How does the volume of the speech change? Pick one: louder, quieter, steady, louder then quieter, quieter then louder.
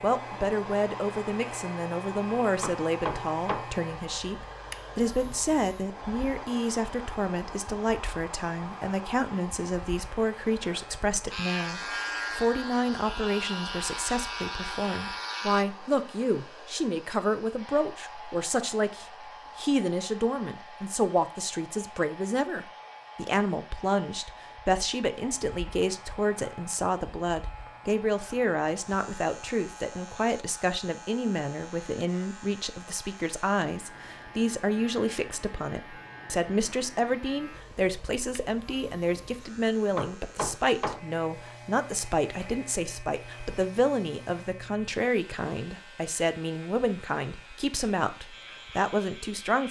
steady.